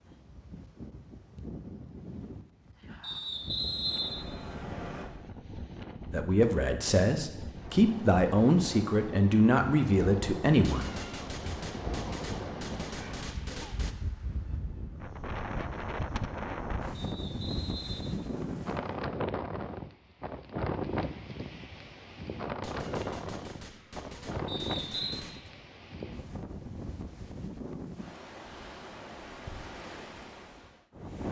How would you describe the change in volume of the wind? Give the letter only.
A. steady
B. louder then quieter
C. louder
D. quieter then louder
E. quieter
B.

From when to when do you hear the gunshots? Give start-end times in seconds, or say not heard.
10.6-13.9, 22.6-25.5.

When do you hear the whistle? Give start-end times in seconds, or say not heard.
3.0-5.0, 16.9-18.9, 24.4-25.2.